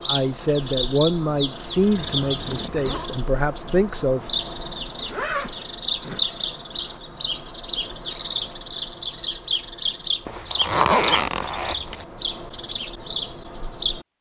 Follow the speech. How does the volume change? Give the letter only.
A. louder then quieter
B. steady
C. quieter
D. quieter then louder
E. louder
D.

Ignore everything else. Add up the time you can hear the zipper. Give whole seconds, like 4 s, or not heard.
5 s.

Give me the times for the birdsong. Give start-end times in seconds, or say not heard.
0.0-14.1.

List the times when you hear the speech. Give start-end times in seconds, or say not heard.
0.1-4.2.